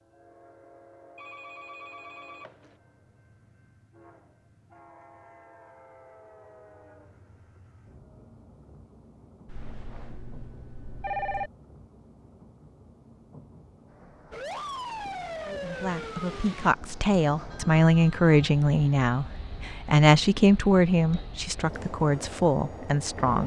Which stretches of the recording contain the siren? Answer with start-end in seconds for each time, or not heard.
14.3-16.7.